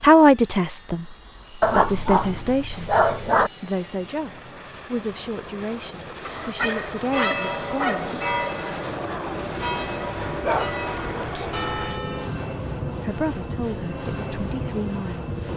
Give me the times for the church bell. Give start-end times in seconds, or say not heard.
6.5-12.3.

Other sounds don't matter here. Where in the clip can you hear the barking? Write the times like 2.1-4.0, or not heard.
1.6-3.5, 6.2-8.2, 10.4-11.9.